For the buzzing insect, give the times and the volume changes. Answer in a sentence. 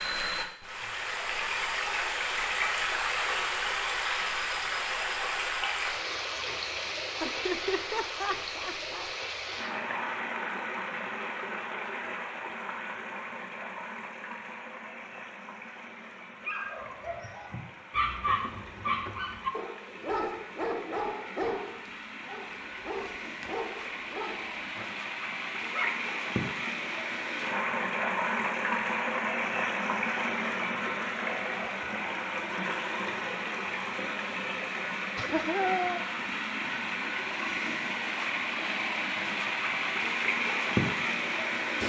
You can't hear the buzzing insect here.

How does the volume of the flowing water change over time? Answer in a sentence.
The volume of the flowing water goes down, then up.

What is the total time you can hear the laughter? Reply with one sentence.
You can hear the laughter for 3 seconds altogether.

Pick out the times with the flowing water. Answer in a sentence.
The flowing water can be heard from 0.0 to 41.8 s.